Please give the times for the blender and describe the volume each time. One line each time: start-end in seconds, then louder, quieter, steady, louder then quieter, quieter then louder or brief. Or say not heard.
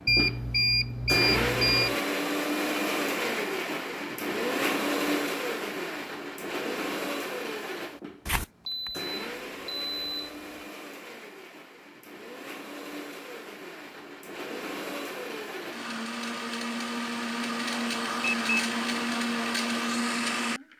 0.0-20.7 quieter then louder.